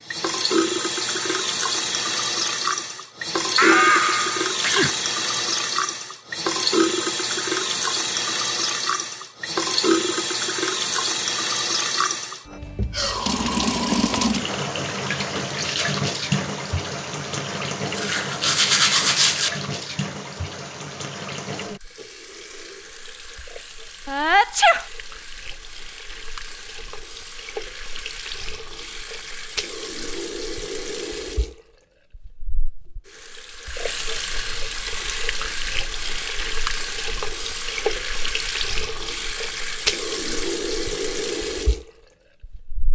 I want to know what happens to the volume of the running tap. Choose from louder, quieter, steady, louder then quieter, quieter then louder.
quieter then louder.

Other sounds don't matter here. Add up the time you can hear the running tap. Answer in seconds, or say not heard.
43 s.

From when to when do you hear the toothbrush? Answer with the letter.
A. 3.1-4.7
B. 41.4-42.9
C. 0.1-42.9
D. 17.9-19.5
D.